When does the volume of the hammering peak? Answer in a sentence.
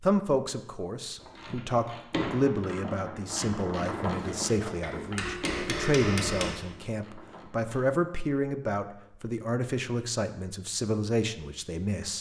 The loudest moment of the hammering is at 6 seconds.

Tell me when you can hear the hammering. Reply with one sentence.
You can hear the hammering from 3.8 to 6.5 s.